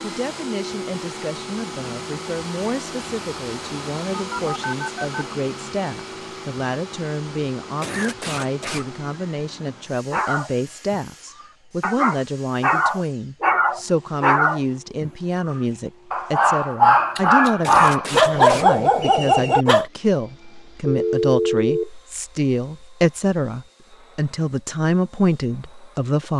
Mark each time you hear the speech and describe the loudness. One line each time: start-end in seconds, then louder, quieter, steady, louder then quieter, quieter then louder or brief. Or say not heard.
0.0-26.3 louder.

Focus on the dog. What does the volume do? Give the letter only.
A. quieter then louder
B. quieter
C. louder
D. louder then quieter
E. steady
C.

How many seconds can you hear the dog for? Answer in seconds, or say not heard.
10 s.